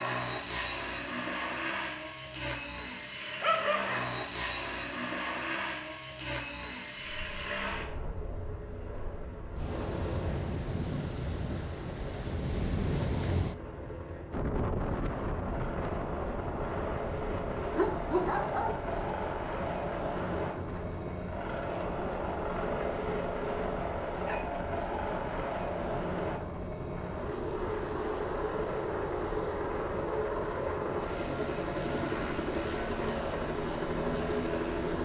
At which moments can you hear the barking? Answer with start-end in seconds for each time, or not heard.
3.4-4.0, 17.8-18.9, 23.8-24.4.